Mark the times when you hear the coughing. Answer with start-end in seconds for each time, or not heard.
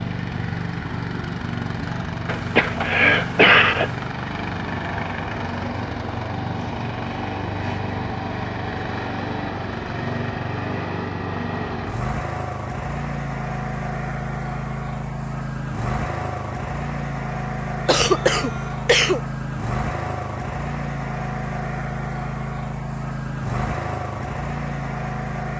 2.2-3.9, 17.9-19.2.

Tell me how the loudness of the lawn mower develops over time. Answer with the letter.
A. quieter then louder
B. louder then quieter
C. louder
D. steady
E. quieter
D.